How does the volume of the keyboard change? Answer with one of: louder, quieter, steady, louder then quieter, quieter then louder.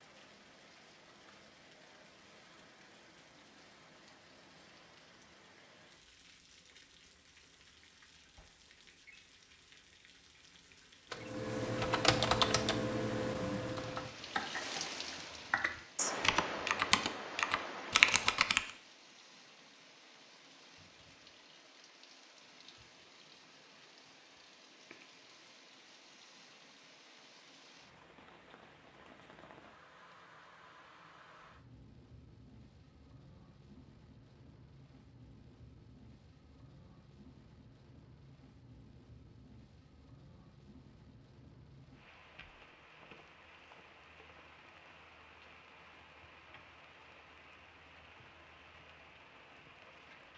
quieter then louder.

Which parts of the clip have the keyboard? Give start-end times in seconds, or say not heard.
11.1-18.7.